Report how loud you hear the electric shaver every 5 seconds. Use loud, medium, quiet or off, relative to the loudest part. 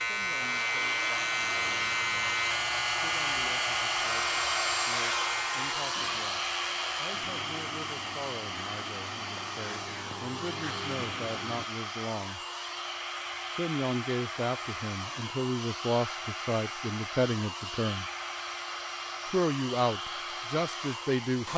loud, medium, medium, off, off.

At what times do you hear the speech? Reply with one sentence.
The speech can be heard from 0.1 to 12.4 s, from 13.5 to 18.1 s and from 19.2 to 21.5 s.